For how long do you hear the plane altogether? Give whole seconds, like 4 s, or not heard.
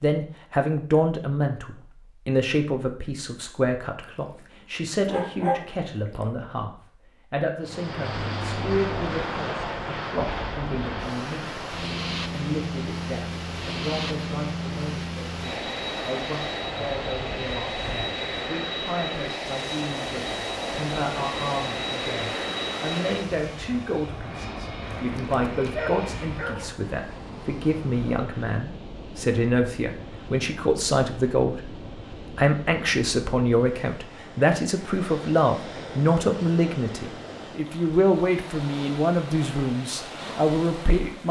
19 s.